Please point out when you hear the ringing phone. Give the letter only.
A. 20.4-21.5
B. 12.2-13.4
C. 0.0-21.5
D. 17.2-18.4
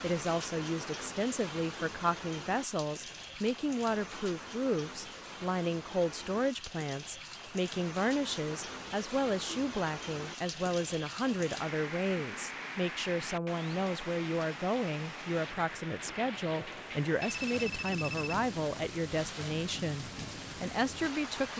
D.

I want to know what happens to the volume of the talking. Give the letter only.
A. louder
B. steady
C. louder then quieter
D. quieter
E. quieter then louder
B.